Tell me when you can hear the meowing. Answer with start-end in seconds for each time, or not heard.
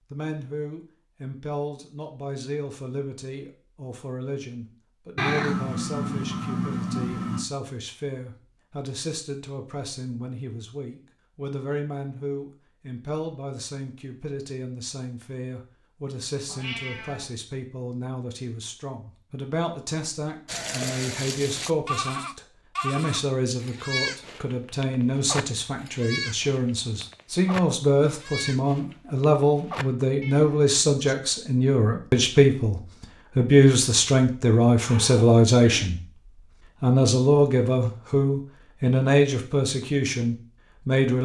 5.2-7.5, 16.4-17.3, 34.9-35.9.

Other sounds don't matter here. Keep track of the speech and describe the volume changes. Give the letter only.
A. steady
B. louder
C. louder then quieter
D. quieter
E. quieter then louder
B.